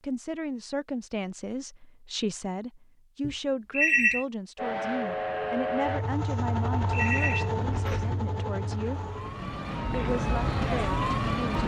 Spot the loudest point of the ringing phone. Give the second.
4 s.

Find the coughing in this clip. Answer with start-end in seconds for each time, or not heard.
not heard.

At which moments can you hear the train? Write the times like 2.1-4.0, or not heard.
4.5-11.6.